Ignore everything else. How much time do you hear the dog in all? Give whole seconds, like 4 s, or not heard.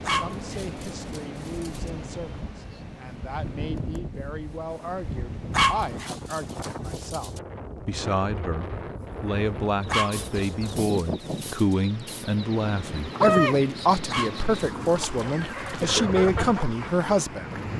7 s.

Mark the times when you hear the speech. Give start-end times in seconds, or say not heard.
0.1-17.6.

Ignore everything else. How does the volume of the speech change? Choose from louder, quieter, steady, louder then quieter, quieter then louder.
louder.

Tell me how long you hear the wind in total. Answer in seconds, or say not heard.
18 s.